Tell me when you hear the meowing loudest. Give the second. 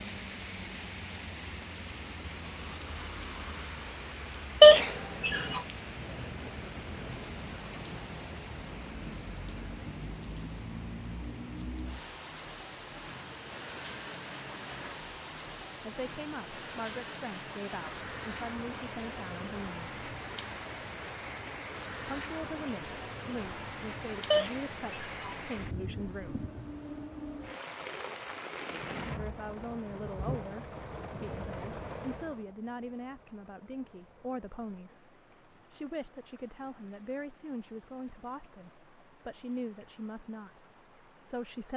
5 s.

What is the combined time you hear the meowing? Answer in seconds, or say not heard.
2 s.